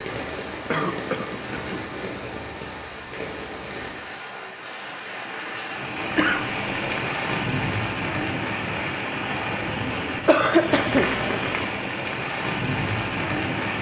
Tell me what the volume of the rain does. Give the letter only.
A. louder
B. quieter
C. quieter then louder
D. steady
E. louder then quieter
A.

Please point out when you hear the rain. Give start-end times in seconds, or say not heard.
0.0-13.7.